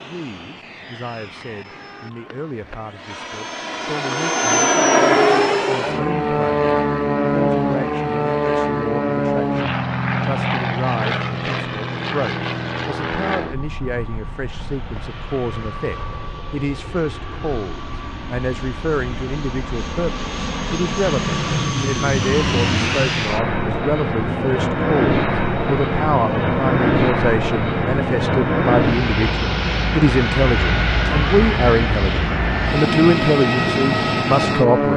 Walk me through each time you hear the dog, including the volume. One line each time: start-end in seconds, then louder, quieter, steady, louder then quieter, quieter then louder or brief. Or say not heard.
not heard.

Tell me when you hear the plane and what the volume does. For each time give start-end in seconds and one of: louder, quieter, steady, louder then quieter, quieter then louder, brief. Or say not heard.
0.0-34.9 quieter then louder.